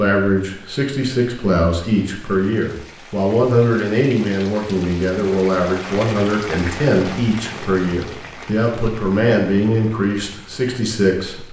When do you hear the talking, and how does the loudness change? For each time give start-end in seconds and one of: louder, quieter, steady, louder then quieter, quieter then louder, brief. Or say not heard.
0.0-11.4 steady.